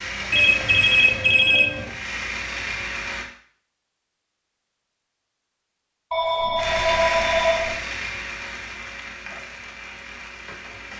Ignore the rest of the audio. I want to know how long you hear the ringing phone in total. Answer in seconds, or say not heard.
3 s.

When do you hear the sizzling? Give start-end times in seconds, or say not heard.
0.0-3.3, 6.5-10.9.